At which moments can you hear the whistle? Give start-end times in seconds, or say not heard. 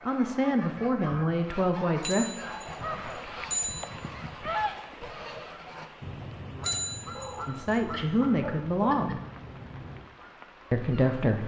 not heard.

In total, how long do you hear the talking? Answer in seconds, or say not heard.
5 s.